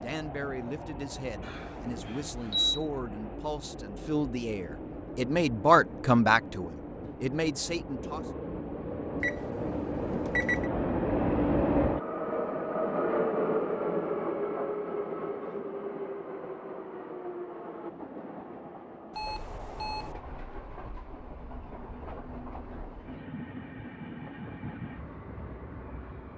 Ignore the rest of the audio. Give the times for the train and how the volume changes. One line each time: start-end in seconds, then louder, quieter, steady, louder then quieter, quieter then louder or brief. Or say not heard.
0.0-26.3 louder then quieter.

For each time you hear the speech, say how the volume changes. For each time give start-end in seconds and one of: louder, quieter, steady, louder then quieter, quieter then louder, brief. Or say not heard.
0.0-8.2 louder then quieter.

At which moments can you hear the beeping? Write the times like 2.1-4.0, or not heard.
1.4-2.9, 9.2-10.7, 19.1-20.1.